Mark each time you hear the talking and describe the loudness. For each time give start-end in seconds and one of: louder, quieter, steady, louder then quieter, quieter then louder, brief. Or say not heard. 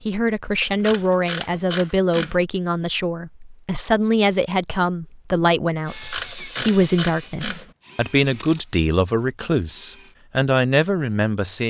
0.1-11.6 steady.